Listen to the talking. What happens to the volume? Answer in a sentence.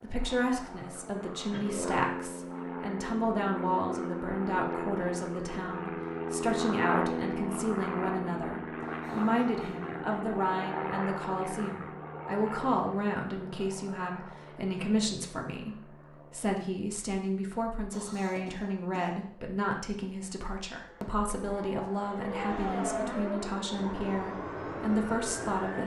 The volume of the talking stays about the same.